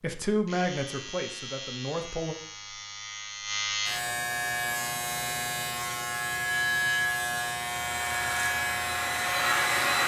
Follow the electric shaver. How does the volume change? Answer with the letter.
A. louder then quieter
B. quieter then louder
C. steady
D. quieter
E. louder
E.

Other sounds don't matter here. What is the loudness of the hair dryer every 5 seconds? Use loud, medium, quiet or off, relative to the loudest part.
off, loud.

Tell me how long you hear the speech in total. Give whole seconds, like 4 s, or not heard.
2 s.